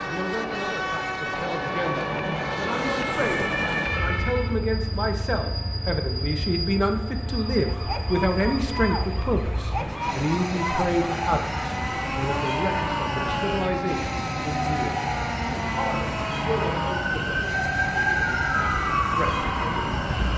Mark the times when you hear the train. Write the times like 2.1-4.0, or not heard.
0.0-20.3.